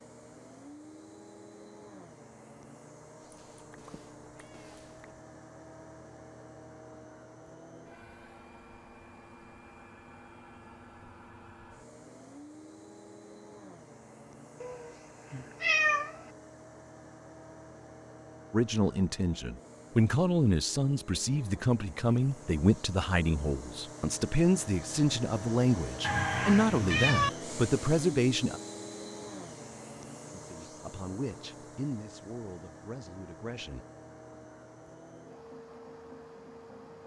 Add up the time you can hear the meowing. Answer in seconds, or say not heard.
5 s.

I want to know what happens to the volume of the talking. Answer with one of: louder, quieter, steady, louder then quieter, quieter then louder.
quieter.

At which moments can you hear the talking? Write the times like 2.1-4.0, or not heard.
18.5-28.6, 30.3-33.8.